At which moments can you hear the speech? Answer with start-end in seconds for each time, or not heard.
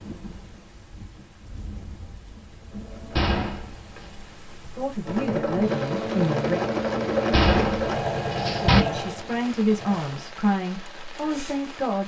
4.8-6.6, 8.6-12.0.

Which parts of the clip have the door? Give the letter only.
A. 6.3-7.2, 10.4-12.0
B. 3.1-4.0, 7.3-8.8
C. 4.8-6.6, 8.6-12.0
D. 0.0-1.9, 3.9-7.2
B.